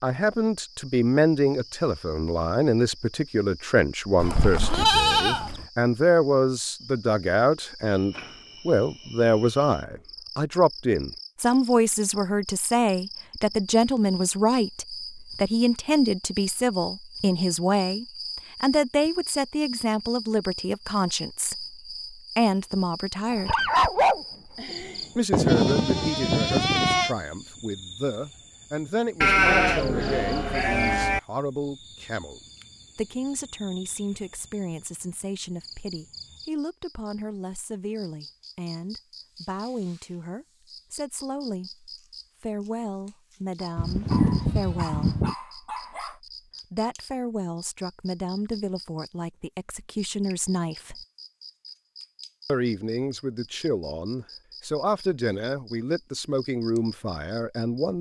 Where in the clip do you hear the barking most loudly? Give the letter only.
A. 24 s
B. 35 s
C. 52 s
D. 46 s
A.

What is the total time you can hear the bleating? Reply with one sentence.
The bleating can be heard for 7 seconds in total.